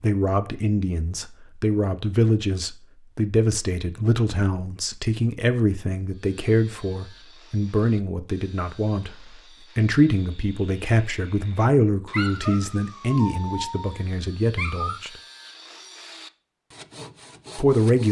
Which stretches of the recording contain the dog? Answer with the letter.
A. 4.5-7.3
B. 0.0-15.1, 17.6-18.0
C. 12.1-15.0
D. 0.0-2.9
C.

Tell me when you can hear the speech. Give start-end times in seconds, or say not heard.
0.0-15.1, 17.6-18.0.